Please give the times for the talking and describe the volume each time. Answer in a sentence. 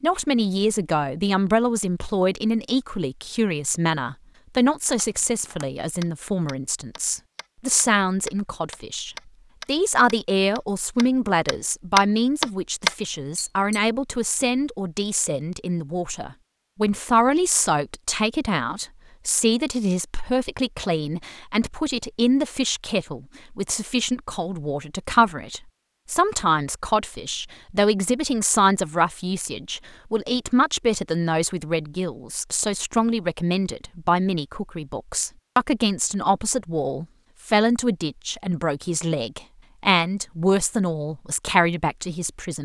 The talking can be heard from 0.0 to 42.6 s, at a steady volume.